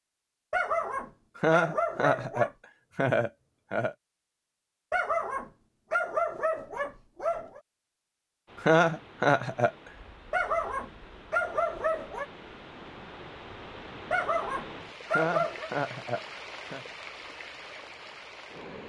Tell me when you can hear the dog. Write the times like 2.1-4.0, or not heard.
0.5-2.5, 4.9-7.6, 10.3-12.2, 14.1-15.7.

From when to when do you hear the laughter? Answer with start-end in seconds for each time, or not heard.
1.4-4.0, 8.6-9.7, 15.1-16.9.